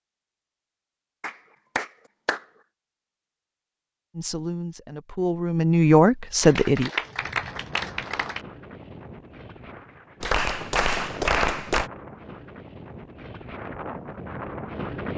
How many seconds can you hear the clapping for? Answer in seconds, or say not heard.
5 s.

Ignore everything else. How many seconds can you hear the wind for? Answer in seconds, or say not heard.
8 s.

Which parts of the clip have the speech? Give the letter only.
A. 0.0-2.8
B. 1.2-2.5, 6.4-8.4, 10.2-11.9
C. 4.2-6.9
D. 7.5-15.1
C.